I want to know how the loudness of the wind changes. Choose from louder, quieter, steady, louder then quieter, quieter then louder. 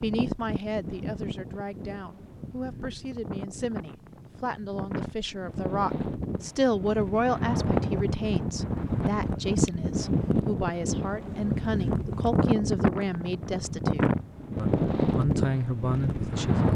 louder.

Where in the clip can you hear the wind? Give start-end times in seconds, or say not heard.
0.0-16.6.